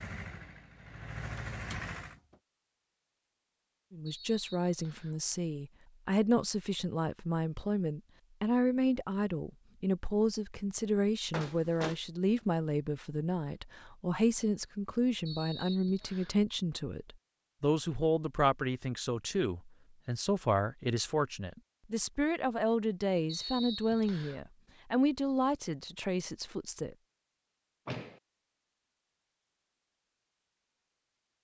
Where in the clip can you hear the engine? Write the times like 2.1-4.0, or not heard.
0.0-2.2.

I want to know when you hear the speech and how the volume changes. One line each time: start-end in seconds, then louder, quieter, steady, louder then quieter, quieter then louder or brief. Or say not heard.
3.9-26.9 steady.